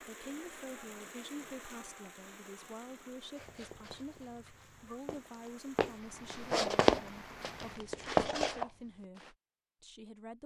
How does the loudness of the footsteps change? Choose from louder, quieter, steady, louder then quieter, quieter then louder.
louder.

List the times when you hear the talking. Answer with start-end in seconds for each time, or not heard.
0.0-10.4.